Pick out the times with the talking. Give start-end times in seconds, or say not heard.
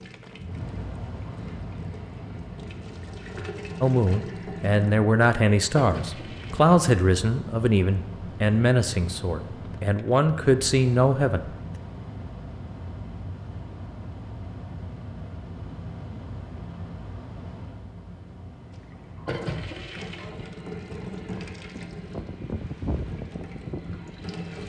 3.8-11.4.